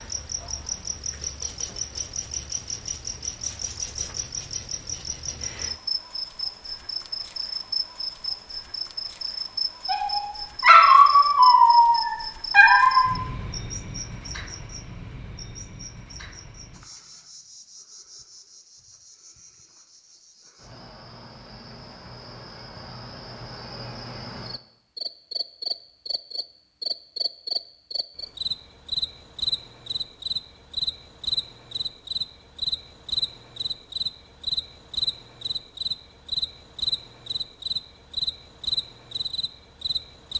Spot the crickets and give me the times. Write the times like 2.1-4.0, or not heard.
0.0-40.3.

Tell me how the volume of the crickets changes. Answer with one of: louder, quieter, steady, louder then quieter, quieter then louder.
quieter then louder.